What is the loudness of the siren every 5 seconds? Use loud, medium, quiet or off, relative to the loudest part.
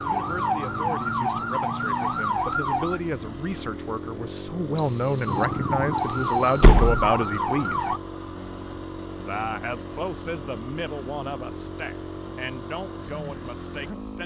loud, loud, off.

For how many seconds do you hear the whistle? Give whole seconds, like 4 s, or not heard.
2 s.